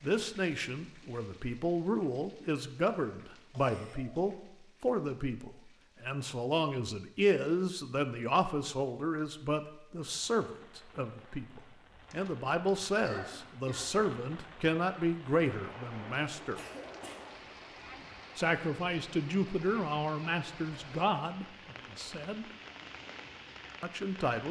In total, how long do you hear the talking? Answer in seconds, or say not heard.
21 s.